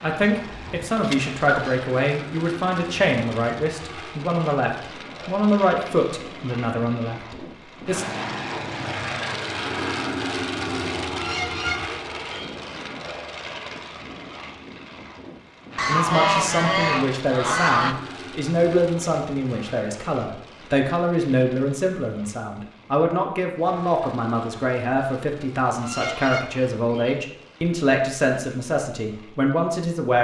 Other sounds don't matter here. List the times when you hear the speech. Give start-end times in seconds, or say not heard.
0.0-8.1, 15.8-30.1.